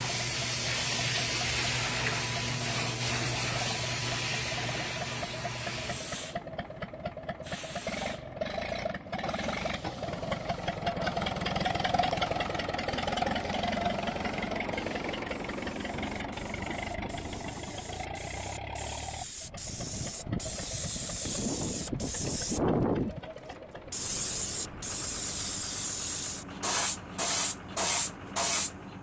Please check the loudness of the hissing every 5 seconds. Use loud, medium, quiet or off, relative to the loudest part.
loud, medium, quiet, quiet, loud, loud.